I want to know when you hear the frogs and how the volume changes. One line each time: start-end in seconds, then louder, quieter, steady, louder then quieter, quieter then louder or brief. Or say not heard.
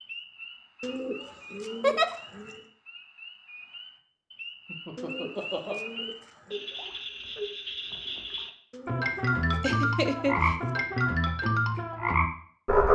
0.0-12.9 louder.